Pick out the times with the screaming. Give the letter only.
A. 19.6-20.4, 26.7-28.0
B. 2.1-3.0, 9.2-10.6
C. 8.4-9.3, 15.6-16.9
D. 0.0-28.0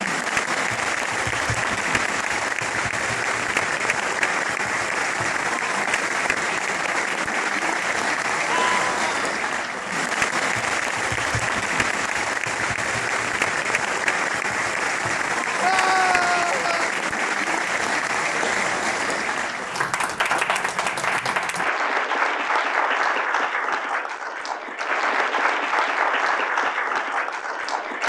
C.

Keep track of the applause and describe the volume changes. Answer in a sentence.
The loudness of the applause stays about the same.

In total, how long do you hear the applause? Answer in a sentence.
The applause can be heard for 28 seconds in total.